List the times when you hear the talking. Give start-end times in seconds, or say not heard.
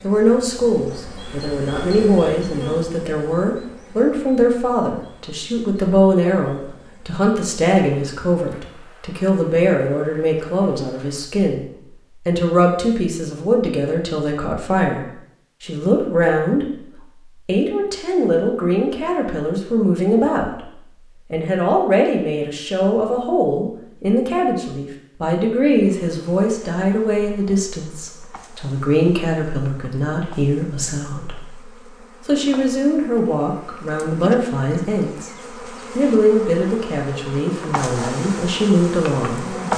0.0-16.8, 17.4-20.6, 21.3-31.6, 32.2-35.3, 36.0-39.7.